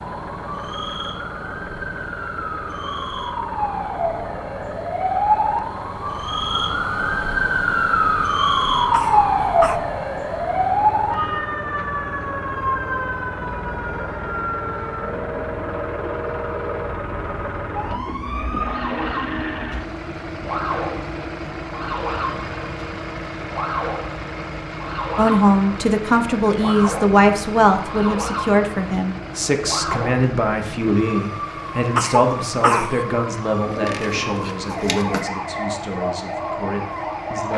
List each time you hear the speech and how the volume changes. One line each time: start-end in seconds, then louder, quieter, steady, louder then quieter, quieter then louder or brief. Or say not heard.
25.1-37.5 quieter.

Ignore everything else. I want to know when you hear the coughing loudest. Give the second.
33 s.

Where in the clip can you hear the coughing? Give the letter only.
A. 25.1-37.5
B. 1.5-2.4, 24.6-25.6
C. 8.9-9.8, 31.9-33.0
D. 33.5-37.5
C.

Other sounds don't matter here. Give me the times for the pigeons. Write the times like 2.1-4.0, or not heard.
33.5-37.5.